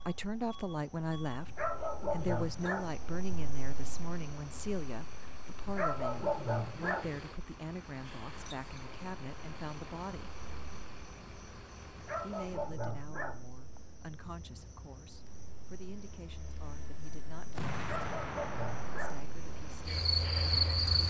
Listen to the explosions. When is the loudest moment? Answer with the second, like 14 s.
18 s.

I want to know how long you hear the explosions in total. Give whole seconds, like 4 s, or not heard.
2 s.